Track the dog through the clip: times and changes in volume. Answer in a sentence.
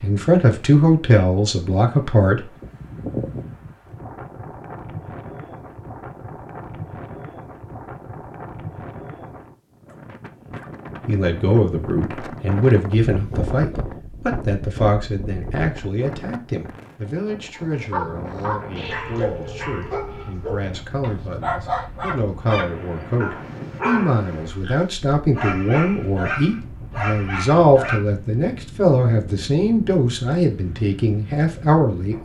You can hear the dog from 17.7 to 28.0 s, at a steady volume.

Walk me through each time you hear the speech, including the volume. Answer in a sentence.
The speech can be heard briefly from 0.0 to 2.5 s; and from 11.1 to 32.2 s, getting quieter then louder.